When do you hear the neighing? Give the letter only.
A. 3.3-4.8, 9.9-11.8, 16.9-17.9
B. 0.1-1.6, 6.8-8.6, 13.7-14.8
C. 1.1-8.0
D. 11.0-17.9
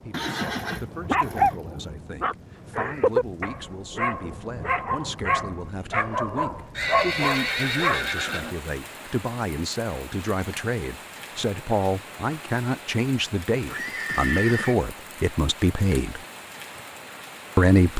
B.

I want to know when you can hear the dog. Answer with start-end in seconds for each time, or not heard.
1.1-8.0.